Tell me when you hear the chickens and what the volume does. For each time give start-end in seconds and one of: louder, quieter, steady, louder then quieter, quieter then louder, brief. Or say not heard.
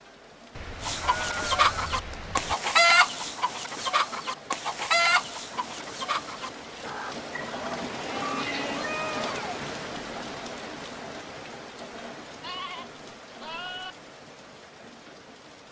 0.8-9.6 quieter.